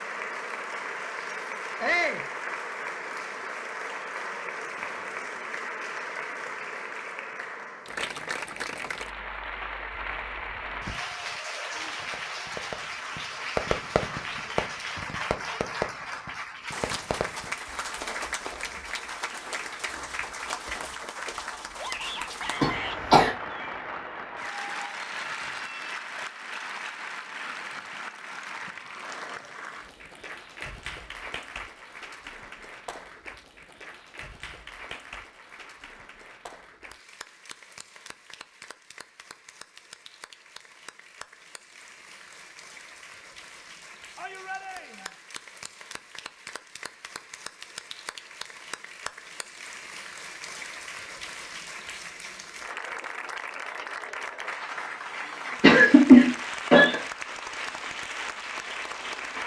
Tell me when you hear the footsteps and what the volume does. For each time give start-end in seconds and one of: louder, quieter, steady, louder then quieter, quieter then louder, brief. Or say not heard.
not heard.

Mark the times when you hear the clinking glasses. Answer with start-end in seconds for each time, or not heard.
not heard.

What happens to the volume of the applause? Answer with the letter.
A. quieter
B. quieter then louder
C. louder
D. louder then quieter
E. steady
B.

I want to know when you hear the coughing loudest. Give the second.
56 s.